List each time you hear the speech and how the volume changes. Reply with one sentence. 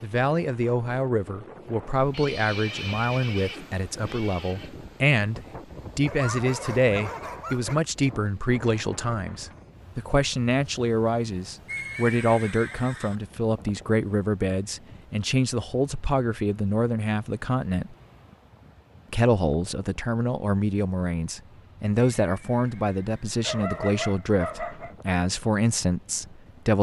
You can hear the speech from 0.0 to 17.9 s, at a steady volume; and from 19.1 to 26.7 s, at a steady volume.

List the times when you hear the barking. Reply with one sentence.
The barking can be heard from 6.0 to 7.8 s and from 23.4 to 24.9 s.